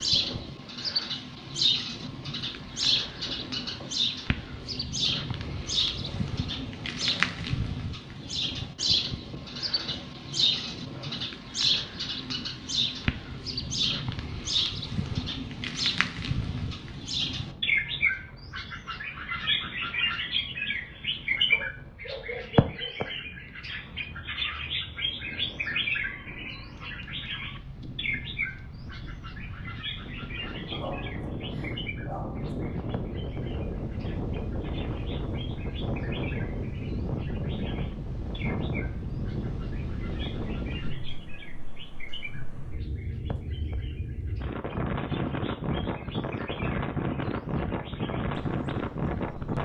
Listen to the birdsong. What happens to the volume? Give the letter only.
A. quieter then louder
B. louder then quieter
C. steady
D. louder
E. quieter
E.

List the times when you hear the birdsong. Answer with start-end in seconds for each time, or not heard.
0.0-49.6.